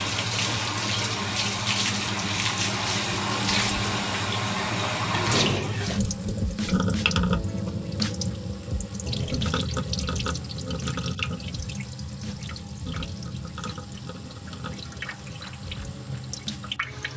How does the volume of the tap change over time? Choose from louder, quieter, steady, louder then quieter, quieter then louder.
quieter.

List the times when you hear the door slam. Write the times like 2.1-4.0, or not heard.
5.2-6.0.